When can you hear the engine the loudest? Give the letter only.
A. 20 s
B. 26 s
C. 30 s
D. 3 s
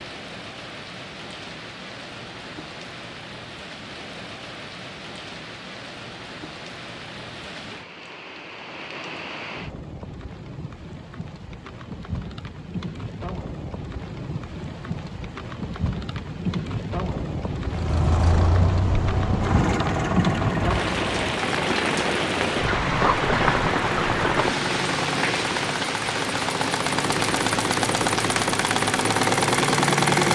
C.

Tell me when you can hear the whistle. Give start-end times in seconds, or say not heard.
not heard.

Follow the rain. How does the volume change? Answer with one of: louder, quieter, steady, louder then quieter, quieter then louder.
louder.